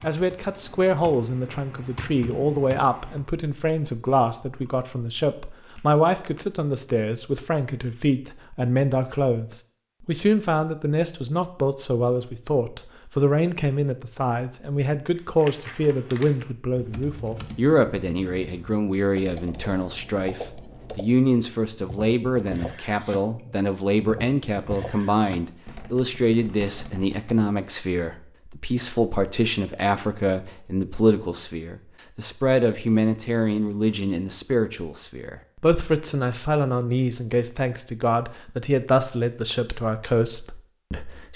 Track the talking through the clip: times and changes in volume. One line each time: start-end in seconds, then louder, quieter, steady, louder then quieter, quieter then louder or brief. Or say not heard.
0.0-41.3 steady.